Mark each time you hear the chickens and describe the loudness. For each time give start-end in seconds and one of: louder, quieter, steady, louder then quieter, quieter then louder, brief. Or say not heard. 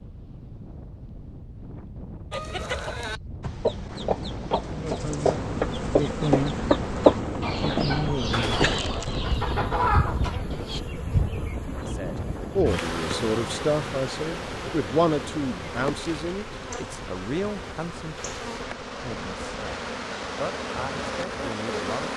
2.3-10.8 louder then quieter.